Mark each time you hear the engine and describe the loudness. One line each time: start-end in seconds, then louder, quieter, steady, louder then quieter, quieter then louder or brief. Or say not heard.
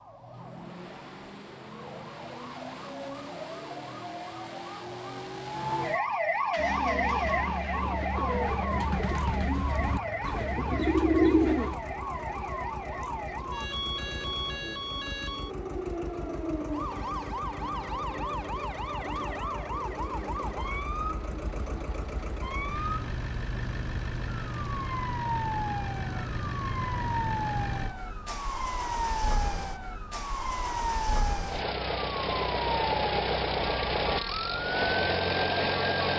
0.0-36.1 louder.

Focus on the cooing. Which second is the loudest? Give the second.
11 s.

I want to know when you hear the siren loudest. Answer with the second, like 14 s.
7 s.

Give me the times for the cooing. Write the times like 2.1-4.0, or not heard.
6.5-11.8.